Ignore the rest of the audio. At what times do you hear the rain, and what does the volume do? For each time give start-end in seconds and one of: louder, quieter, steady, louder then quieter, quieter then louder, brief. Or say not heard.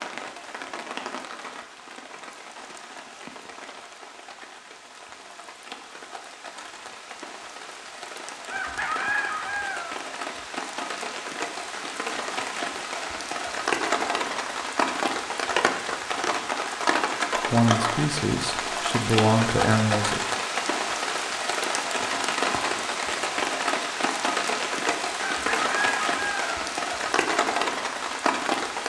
0.0-28.8 louder.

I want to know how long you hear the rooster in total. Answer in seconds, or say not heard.
3 s.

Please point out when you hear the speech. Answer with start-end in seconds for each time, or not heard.
17.4-20.2.